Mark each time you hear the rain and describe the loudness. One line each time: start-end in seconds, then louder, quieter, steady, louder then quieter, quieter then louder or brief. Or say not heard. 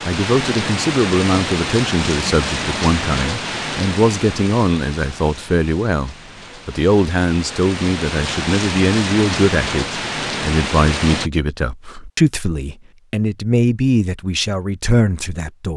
0.0-11.3 quieter then louder.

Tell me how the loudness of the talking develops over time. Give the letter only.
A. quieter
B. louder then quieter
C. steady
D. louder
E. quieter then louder
C.